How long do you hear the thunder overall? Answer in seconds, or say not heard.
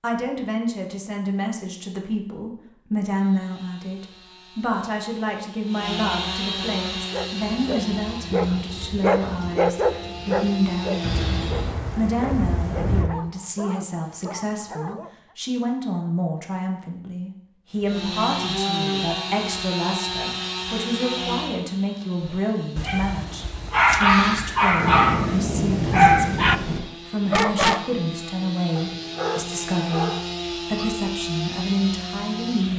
4 s.